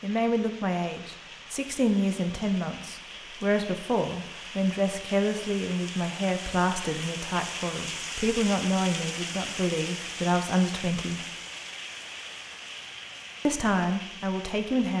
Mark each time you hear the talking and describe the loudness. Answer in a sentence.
The talking can be heard from 0.0 to 11.2 s, at a steady volume; and briefly from 13.4 to 14.9 s.